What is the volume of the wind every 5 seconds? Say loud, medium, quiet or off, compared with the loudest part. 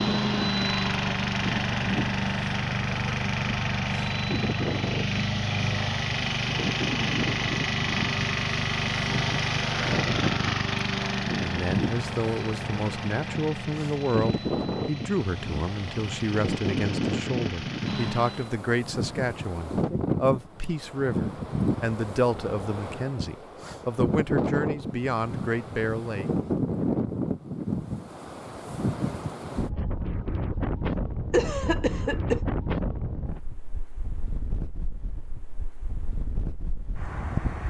loud, loud, loud, loud, loud, loud, loud, medium.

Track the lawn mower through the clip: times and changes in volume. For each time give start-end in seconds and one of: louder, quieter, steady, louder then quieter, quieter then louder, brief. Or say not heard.
0.0-18.6 quieter.